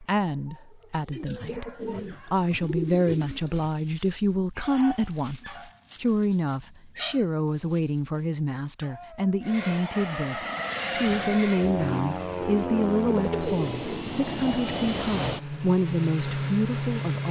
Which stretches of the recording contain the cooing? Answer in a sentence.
You can hear the cooing from 1.1 to 3.7 s and from 12.4 to 14.1 s.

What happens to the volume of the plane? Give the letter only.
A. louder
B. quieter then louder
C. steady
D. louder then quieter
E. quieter
C.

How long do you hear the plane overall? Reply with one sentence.
The plane can be heard for 8 seconds in total.